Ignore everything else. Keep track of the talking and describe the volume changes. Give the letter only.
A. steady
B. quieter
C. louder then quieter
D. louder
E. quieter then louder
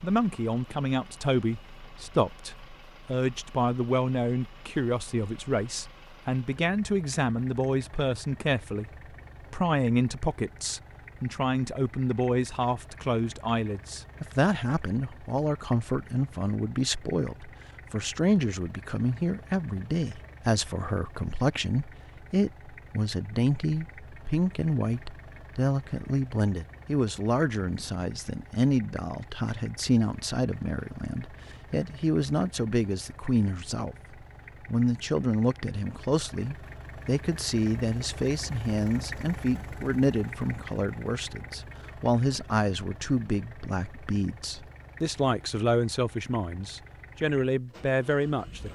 A.